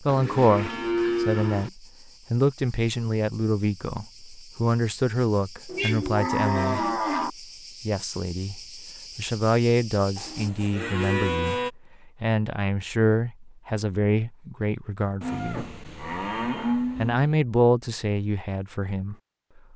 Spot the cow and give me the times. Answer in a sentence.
You can hear the cow from 0.1 to 1.7 s, from 5.7 to 7.3 s, from 10.2 to 11.7 s and from 15.2 to 17.3 s.